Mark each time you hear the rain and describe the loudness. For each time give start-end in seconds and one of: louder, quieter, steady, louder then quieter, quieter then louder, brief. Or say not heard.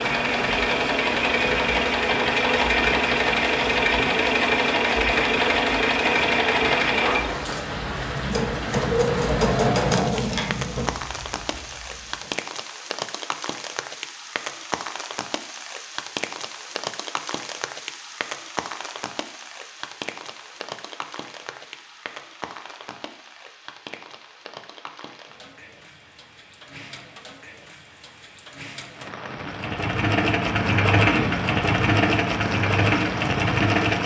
0.0-34.0 quieter then louder.